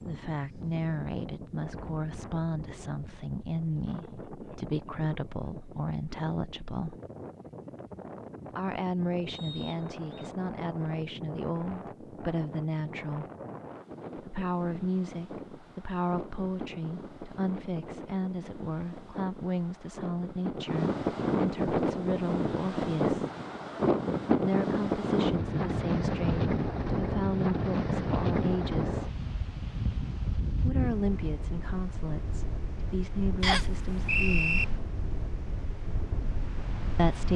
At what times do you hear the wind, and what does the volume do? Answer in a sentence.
You can hear the wind from 0.0 to 37.3 s, getting louder then quieter.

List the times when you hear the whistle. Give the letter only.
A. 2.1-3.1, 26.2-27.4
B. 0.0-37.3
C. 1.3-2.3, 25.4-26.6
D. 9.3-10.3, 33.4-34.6
D.